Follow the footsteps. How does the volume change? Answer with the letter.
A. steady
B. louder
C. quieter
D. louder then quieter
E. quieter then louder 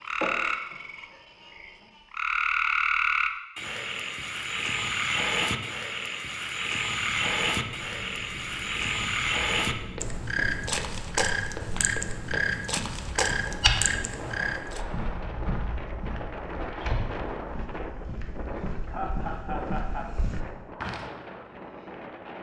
D.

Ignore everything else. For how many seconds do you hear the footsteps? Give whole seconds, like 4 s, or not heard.
11 s.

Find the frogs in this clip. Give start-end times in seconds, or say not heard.
0.0-14.8.